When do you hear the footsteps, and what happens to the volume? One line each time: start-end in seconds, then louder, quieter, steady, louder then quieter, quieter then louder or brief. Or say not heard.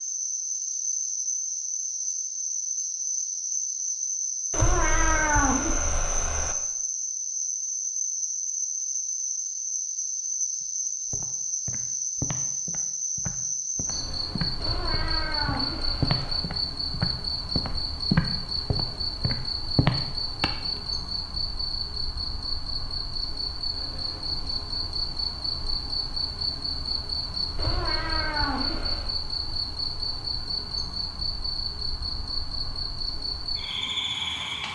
11.1-20.8 louder.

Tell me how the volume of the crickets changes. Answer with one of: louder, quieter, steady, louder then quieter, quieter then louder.
steady.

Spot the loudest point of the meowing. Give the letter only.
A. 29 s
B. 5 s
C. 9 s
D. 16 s
B.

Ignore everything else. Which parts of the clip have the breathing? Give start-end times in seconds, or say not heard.
not heard.